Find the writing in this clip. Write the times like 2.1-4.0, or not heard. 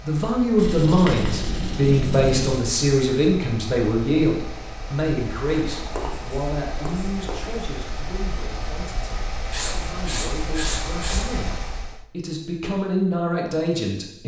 0.6-2.6, 5.5-7.6, 9.5-11.2.